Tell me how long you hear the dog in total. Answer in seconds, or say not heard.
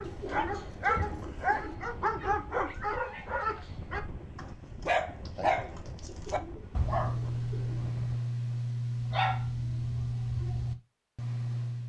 12 s.